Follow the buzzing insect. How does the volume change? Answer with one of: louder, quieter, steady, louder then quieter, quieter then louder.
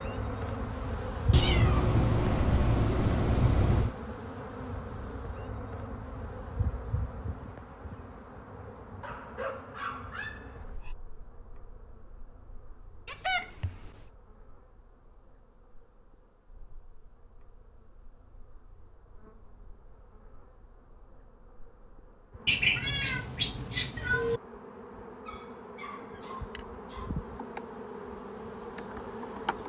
quieter then louder.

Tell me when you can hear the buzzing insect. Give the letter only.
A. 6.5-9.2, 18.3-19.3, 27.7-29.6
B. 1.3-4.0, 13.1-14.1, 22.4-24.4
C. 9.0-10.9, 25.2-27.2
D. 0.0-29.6
D.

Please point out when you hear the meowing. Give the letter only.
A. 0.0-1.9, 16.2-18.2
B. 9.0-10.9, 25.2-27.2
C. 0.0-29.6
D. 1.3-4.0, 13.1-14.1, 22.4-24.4
D.